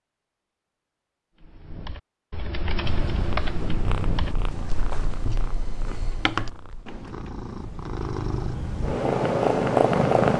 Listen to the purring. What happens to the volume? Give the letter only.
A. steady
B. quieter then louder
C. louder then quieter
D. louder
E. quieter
B.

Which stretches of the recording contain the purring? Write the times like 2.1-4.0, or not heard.
2.8-10.3.